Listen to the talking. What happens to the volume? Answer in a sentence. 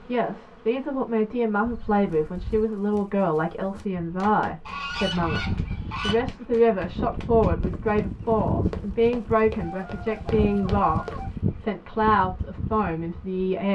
The loudness of the talking stays about the same.